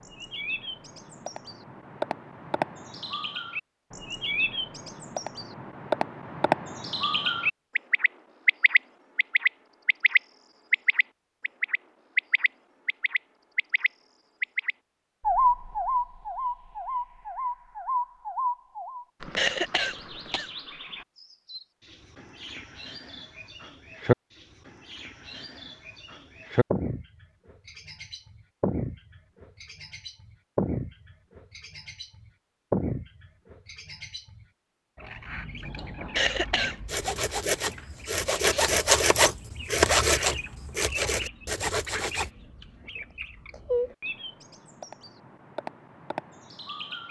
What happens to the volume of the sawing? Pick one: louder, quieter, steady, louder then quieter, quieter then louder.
louder then quieter.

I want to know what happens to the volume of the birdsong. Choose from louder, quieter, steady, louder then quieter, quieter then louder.
quieter.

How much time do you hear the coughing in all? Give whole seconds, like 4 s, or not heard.
2 s.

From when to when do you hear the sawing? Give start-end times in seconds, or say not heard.
36.9-42.3.